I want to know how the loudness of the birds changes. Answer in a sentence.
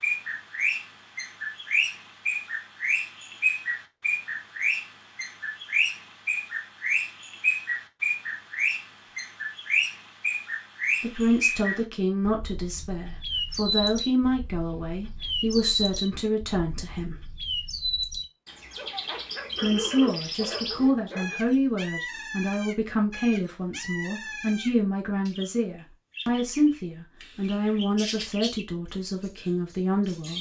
The volume of the birds goes down.